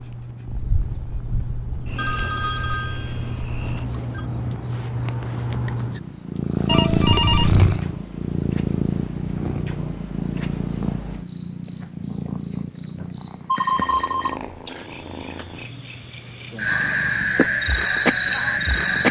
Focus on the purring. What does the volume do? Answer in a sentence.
The loudness of the purring goes up, then down.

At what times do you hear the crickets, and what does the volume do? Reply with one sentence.
The crickets can be heard from 0.0 to 19.0 s, getting louder.